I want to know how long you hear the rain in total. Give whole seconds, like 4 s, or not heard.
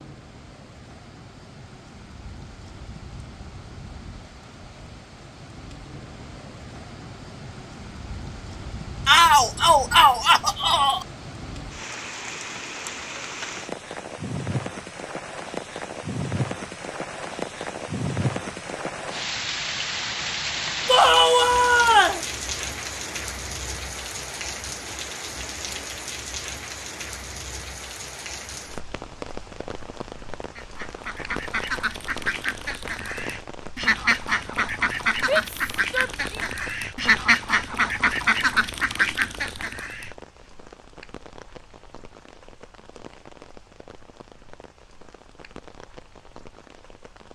47 s.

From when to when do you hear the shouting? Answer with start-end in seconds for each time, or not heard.
9.1-11.1, 20.9-22.2, 35.2-36.5.